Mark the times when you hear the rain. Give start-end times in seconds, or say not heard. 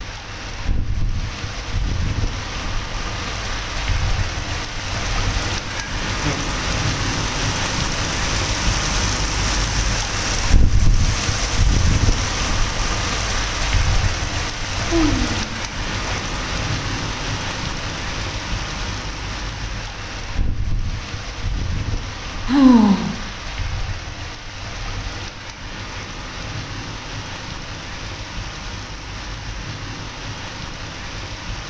0.0-31.6.